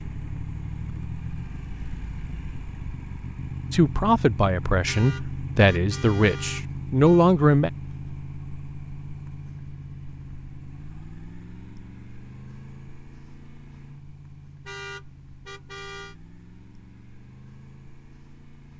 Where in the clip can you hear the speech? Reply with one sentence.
The speech can be heard from 3.7 to 7.7 s.